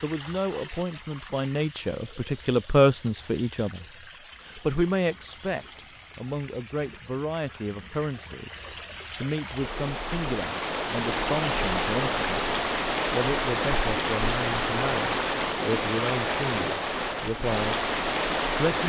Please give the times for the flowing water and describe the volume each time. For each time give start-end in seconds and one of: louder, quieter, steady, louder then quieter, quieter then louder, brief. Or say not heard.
0.0-18.8 louder.